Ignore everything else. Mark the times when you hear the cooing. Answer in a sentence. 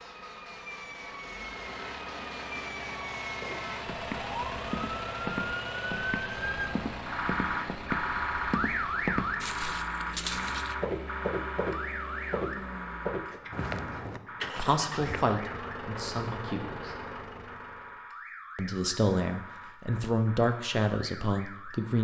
The cooing can't be heard in this clip.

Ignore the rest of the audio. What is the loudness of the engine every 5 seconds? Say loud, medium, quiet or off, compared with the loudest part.
loud, loud, loud, loud, off.